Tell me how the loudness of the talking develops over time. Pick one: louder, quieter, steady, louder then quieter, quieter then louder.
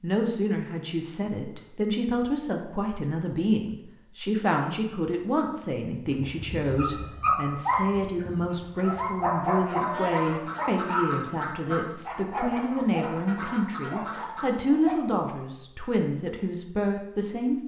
steady.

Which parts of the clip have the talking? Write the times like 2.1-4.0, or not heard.
0.0-17.6.